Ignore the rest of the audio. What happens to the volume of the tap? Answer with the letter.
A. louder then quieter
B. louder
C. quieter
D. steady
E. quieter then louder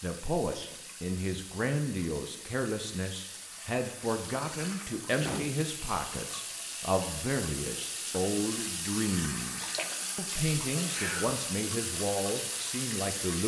B.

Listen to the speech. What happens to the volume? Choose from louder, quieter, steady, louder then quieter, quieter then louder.
steady.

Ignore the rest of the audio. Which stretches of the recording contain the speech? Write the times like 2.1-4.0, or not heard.
0.0-13.4.